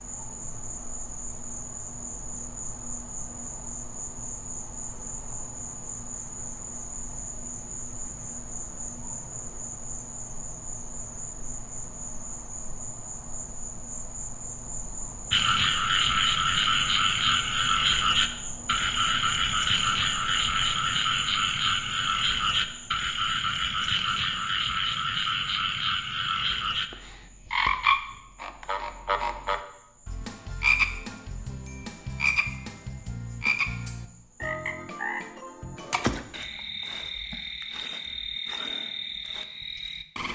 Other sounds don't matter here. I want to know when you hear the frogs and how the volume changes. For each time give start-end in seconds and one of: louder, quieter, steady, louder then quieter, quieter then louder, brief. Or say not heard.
15.3-40.2 quieter.